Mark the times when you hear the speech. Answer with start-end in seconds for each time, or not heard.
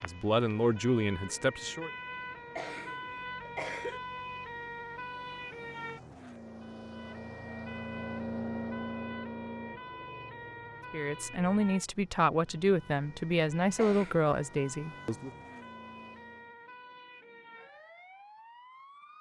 0.0-1.9, 10.9-15.3.